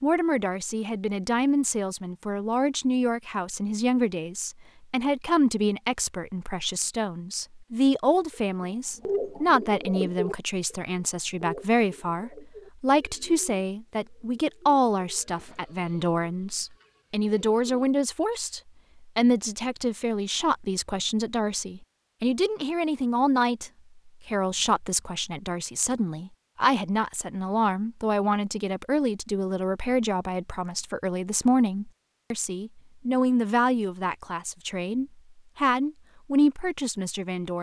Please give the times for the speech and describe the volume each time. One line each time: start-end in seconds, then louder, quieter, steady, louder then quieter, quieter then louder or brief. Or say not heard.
0.0-37.5 steady.